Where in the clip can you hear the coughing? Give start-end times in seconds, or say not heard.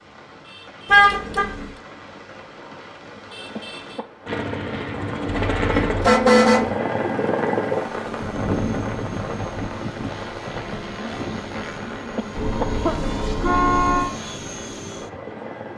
3.5-4.0, 12.2-13.1.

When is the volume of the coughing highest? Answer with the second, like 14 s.
13 s.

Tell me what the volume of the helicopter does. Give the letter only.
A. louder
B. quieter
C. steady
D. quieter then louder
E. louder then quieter
B.